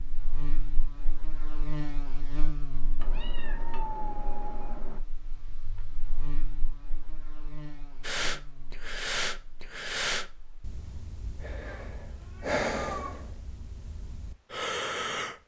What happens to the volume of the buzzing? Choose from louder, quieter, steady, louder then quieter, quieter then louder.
quieter.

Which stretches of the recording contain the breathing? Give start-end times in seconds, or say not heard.
8.0-15.4.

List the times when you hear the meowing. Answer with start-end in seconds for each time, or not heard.
3.0-5.0, 11.6-13.3.